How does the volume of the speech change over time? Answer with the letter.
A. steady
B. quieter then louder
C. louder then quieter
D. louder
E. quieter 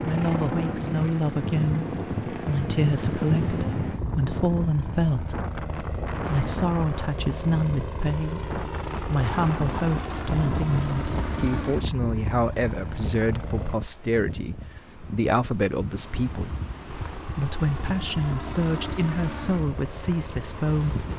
A.